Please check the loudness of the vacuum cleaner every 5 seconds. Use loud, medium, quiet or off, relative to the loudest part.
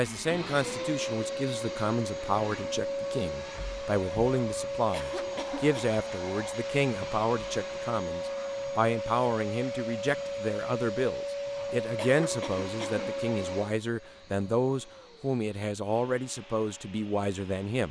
loud, loud, loud, quiet.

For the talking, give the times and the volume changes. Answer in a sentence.
The talking can be heard from 0.0 to 17.8 s, at a steady volume.